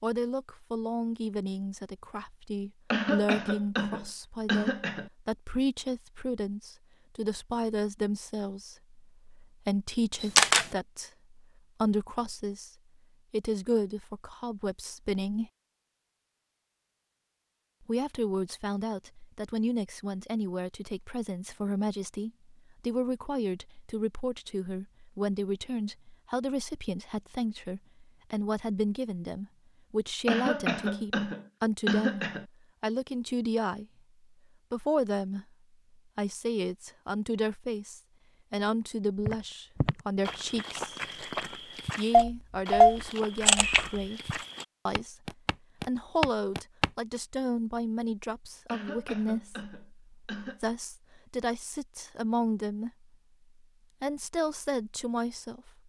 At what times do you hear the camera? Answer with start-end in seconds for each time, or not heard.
10.2-10.7, 42.1-44.0.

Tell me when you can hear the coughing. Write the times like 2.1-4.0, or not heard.
2.9-5.1, 30.2-32.5, 48.6-50.6.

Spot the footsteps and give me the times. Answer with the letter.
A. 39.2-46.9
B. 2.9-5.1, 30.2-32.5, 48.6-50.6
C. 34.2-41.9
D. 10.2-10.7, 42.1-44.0
A.